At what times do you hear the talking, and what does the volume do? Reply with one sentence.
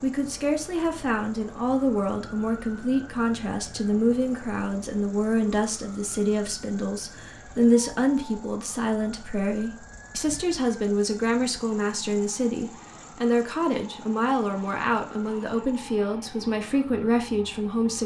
The talking can be heard from 0.0 to 18.0 s, at a steady volume.